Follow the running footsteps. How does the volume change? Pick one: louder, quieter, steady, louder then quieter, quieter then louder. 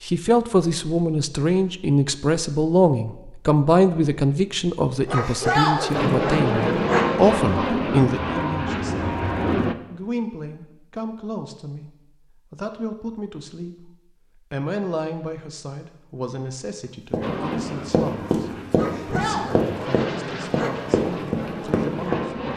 steady.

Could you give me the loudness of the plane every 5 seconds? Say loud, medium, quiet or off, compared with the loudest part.
off, loud, off, medium, medium.